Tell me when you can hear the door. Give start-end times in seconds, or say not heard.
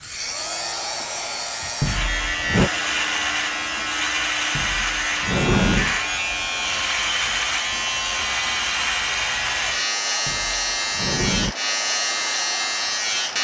1.8-2.7, 4.5-6.0, 10.2-11.6.